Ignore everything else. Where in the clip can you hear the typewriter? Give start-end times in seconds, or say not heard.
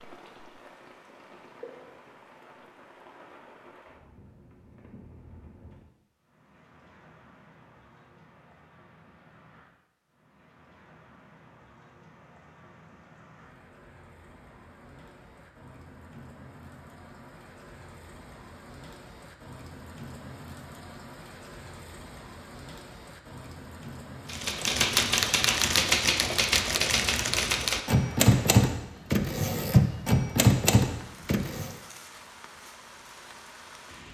24.2-31.7.